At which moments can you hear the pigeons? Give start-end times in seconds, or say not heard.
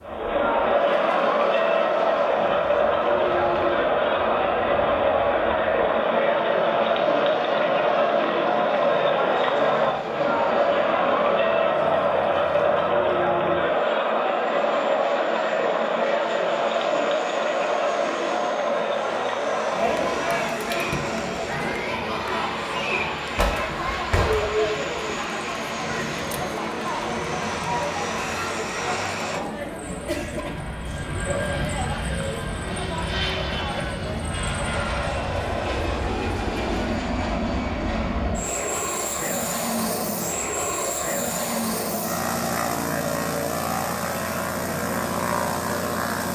not heard.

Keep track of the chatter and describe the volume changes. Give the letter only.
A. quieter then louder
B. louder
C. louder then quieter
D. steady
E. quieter
E.